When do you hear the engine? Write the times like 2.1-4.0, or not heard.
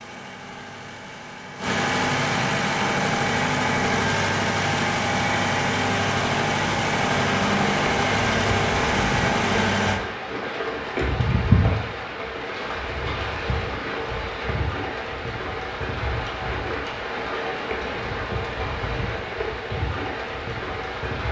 0.0-10.0.